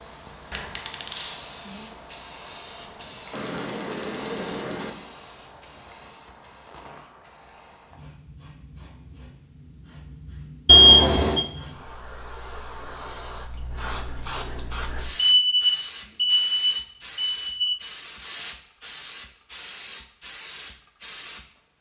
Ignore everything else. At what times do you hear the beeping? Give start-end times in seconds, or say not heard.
3.4-4.9, 10.7-11.4, 15.2-17.8.